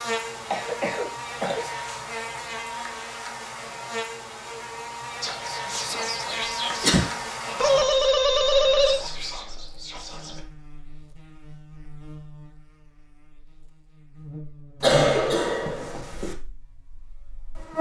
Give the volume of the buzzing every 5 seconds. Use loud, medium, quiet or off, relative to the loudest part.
medium, medium, quiet, loud.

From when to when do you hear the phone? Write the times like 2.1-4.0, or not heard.
7.5-9.0.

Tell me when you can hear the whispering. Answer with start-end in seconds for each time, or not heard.
5.2-10.4.